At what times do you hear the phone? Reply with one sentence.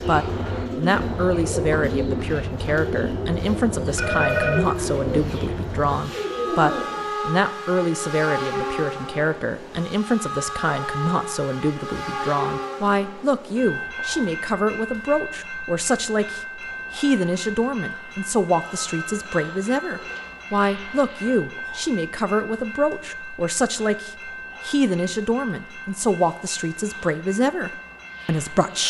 The phone can be heard from 4.0 to 4.7 s and from 18.6 to 20.3 s.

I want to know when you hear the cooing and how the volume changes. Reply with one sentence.
You can hear the cooing from 0.0 to 7.0 s, at a steady volume.